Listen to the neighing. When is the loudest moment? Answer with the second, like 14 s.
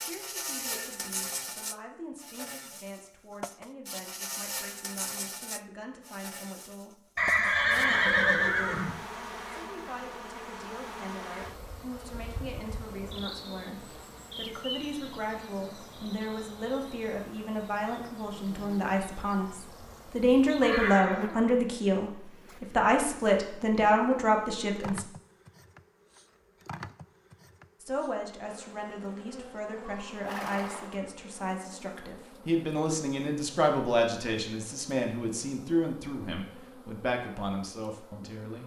8 s.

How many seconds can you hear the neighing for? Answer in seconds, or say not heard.
4 s.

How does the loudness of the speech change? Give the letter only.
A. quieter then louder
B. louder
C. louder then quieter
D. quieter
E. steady
B.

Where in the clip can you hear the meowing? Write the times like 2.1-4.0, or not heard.
not heard.